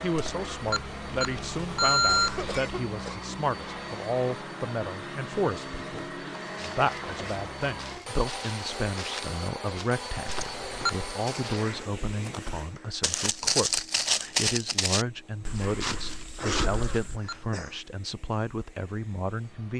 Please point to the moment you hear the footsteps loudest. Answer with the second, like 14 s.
14 s.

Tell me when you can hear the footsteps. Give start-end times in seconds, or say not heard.
6.4-17.2.